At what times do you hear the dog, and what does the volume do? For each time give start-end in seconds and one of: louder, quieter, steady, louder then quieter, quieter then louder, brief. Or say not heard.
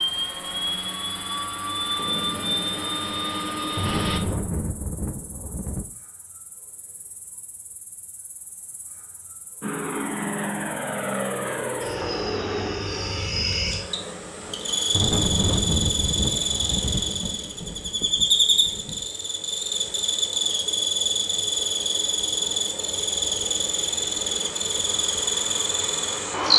not heard.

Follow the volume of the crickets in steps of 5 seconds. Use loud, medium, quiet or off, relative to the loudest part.
quiet, quiet, medium, loud, loud, loud.